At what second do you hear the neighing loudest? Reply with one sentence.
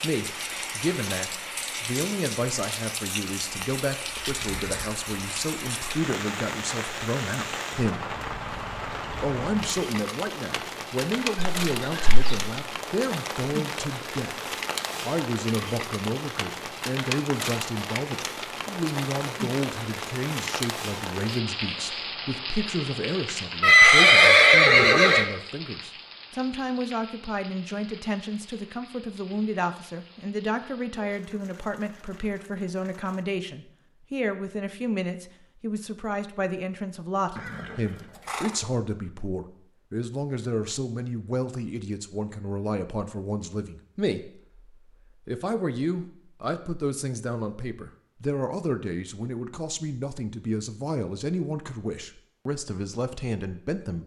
The volume of the neighing peaks at 24 seconds.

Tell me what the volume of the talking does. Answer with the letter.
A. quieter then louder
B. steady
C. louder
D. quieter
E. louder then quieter
B.